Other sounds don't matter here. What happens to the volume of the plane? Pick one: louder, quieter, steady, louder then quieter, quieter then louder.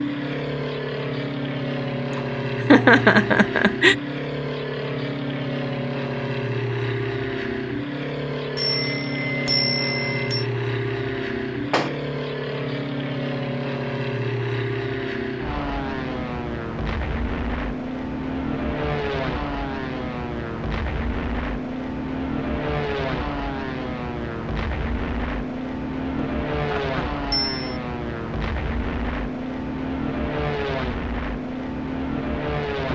steady.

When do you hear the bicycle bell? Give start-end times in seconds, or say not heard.
8.6-10.4, 27.3-27.8.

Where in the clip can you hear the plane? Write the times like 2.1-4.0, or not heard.
0.0-32.9.